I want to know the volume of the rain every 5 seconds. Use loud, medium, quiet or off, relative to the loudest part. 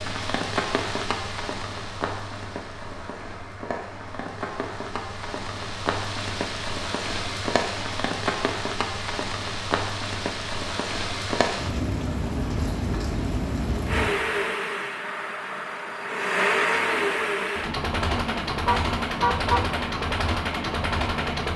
loud, loud, loud, off, off.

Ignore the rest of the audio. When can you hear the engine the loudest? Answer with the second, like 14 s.
17 s.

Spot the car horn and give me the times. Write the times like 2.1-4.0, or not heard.
18.6-19.7.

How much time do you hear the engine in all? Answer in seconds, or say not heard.
8 s.